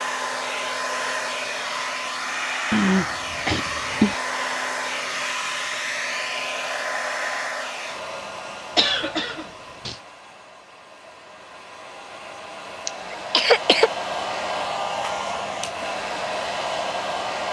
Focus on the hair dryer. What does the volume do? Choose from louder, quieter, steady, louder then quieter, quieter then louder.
quieter then louder.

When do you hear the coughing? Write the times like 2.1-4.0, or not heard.
2.7-4.2, 8.8-9.9, 12.8-13.9.